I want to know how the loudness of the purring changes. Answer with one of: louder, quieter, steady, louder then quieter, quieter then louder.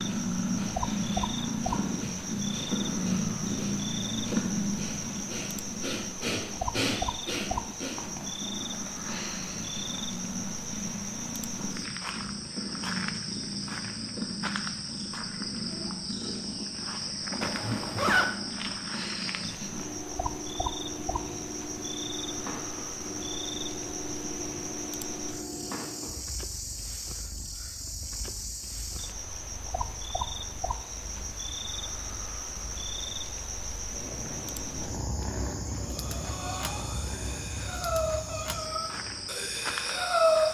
quieter.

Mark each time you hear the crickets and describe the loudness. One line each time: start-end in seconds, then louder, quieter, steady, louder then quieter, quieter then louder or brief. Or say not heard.
0.0-40.4 steady.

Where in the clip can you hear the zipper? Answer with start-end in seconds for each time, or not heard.
17.4-18.4.